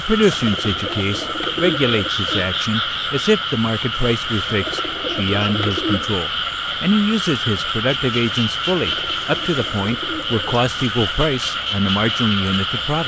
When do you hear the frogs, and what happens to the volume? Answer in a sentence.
You can hear the frogs from 0.0 to 13.0 s, at a steady volume.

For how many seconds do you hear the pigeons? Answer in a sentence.
You can hear the pigeons for 6 seconds altogether.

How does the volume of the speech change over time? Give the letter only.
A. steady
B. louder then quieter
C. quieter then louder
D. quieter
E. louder
A.